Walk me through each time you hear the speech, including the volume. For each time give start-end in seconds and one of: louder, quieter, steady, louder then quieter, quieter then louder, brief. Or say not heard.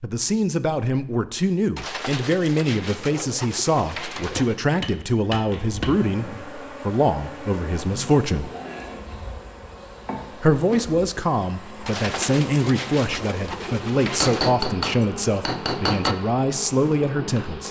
0.0-8.5 steady
10.4-17.6 steady.